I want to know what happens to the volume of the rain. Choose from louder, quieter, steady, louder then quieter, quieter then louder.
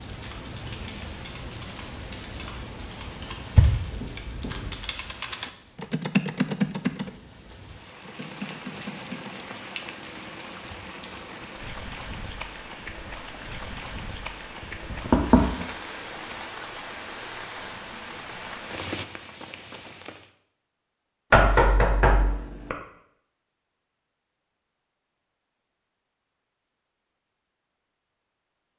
quieter then louder.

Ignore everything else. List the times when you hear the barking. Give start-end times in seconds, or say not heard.
not heard.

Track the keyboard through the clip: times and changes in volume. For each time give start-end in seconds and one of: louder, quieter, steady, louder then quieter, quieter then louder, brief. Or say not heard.
0.2-9.4 louder then quieter.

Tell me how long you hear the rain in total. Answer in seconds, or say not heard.
20 s.